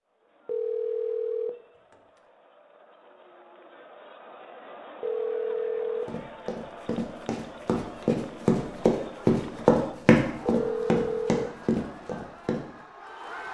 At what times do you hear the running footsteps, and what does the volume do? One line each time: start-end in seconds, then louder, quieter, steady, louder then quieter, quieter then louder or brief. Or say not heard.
6.0-12.7 louder then quieter.